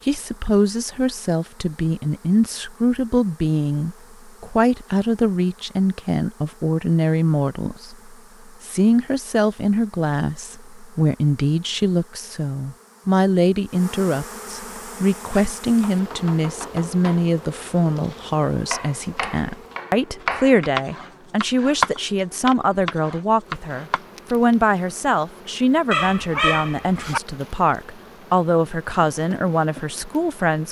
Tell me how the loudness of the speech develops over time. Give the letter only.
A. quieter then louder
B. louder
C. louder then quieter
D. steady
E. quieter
D.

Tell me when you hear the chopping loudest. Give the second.
22 s.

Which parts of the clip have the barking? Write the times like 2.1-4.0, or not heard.
25.9-27.2.